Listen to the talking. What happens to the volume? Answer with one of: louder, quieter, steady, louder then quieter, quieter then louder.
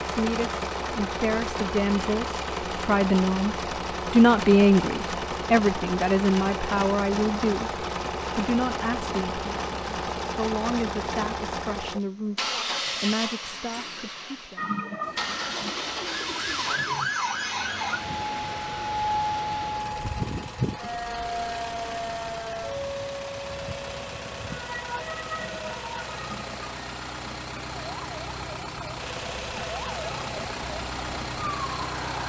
louder then quieter.